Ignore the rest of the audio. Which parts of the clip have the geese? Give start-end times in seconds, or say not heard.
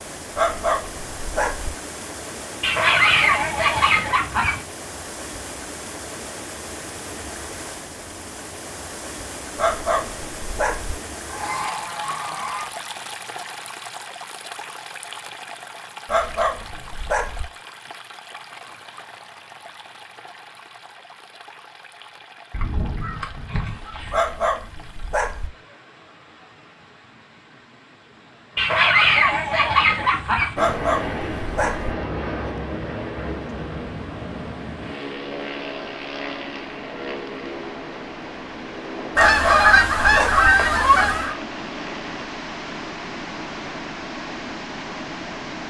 2.6-4.6, 11.2-12.8, 22.5-24.2, 28.6-30.6, 39.1-41.4.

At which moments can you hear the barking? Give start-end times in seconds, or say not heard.
0.3-1.7, 9.6-10.9, 16.1-17.4, 24.1-25.5, 30.6-31.9, 39.1-40.5.